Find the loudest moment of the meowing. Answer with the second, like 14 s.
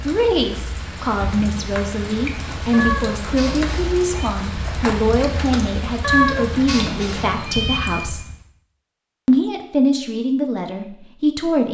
6 s.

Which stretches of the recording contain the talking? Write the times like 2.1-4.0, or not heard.
0.0-8.2, 9.2-11.6.